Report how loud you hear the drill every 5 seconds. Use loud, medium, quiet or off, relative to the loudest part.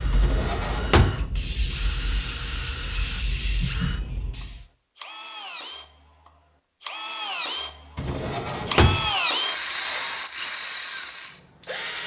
quiet, loud, loud.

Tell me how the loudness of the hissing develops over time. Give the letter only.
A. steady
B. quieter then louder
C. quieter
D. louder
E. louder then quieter
D.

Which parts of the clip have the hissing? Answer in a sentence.
You can hear the hissing from 0.0 to 4.7 s.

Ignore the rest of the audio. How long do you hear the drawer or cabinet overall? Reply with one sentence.
The drawer or cabinet can be heard for 2 seconds in total.